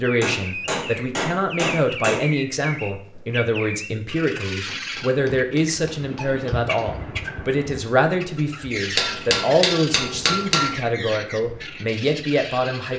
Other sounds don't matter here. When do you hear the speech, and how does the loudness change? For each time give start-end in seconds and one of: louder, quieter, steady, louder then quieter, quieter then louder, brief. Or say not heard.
0.0-12.9 steady.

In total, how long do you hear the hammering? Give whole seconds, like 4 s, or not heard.
6 s.